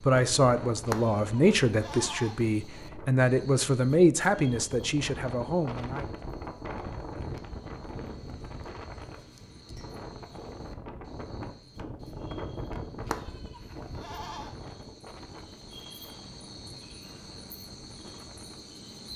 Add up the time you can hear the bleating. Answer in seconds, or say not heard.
3 s.